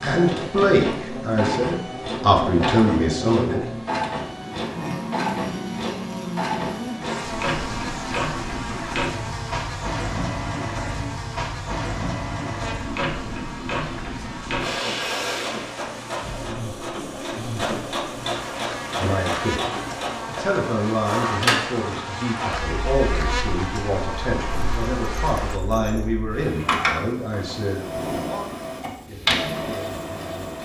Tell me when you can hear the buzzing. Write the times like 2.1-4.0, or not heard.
0.1-25.6.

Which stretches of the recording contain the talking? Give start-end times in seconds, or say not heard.
0.0-3.6, 18.9-30.6.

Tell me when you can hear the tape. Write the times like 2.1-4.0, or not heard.
not heard.